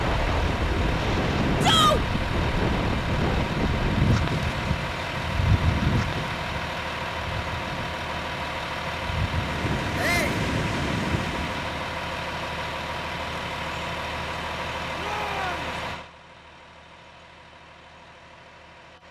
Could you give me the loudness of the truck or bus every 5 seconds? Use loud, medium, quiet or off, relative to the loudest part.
loud, loud, loud, medium.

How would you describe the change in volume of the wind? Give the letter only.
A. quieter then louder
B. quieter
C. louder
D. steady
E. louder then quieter
A.